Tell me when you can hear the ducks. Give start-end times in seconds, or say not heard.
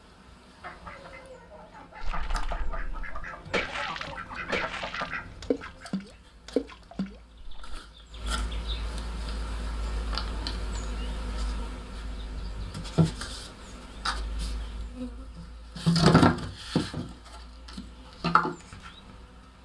0.4-5.9.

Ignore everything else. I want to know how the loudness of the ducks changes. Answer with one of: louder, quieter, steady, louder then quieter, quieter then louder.
louder.